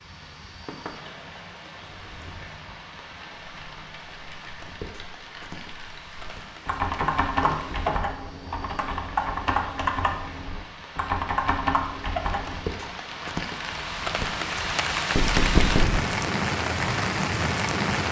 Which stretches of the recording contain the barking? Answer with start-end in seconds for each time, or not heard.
not heard.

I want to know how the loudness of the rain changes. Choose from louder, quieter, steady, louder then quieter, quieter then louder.
louder.